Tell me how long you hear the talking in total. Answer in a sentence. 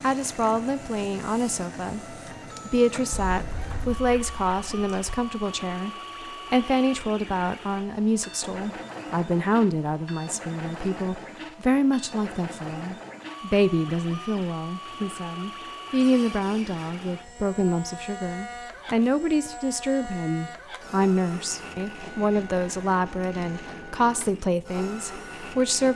You can hear the talking for 25 seconds altogether.